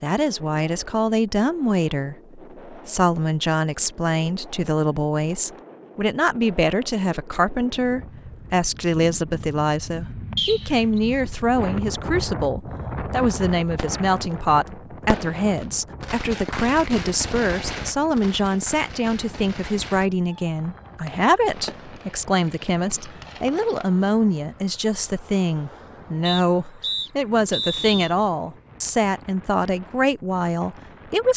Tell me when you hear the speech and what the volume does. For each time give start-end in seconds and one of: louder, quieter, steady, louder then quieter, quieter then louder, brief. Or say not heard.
0.0-31.3 steady.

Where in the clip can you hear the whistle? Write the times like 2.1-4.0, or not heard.
10.3-11.0, 26.2-28.1.